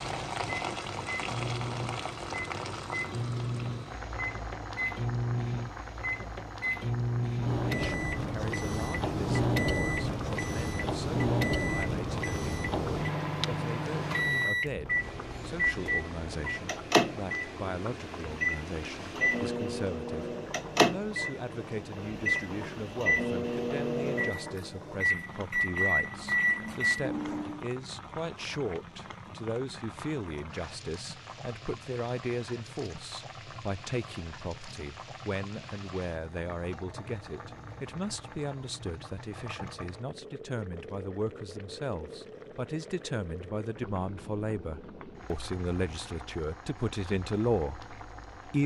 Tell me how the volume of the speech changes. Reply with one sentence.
The loudness of the speech goes up.